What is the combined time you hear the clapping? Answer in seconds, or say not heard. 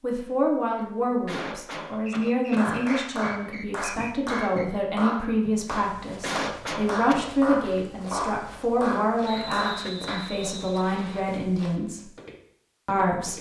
8 s.